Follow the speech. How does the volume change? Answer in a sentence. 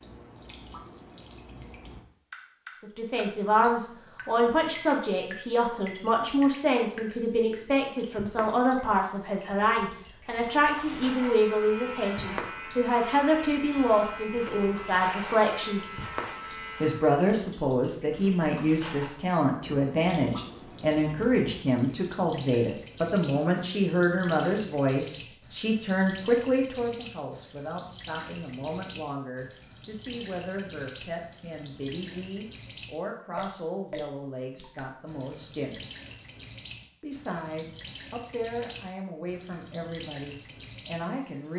The volume of the speech goes down.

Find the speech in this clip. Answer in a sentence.
You can hear the speech from 2.8 to 15.9 s, from 16.8 to 35.8 s and from 37.0 to 41.5 s.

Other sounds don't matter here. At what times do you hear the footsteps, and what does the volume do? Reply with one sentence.
The footsteps can't be heard in this clip.